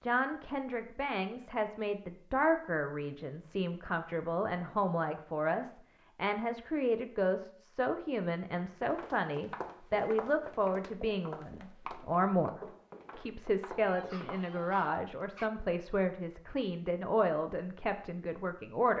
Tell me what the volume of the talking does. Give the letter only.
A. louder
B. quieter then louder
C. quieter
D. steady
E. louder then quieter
D.